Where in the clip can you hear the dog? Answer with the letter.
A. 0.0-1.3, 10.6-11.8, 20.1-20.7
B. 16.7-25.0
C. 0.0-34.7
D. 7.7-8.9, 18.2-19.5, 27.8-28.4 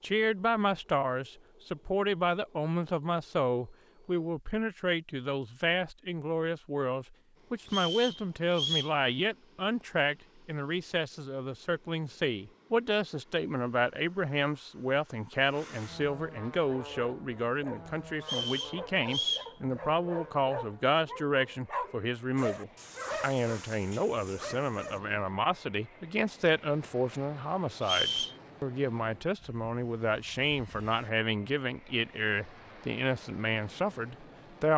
B.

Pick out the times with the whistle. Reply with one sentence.
You can hear the whistle from 7.7 to 8.9 s, from 18.2 to 19.5 s and from 27.8 to 28.4 s.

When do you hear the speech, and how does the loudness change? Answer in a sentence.
The speech can be heard from 0.0 to 34.7 s, at a steady volume.